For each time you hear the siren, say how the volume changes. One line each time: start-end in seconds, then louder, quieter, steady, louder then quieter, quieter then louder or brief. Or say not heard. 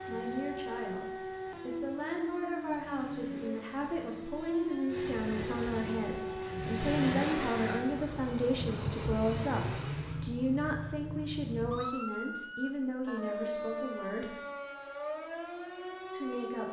0.0-16.6 steady.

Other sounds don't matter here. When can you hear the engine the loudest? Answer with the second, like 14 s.
7 s.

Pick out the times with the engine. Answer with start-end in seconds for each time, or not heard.
0.0-10.3.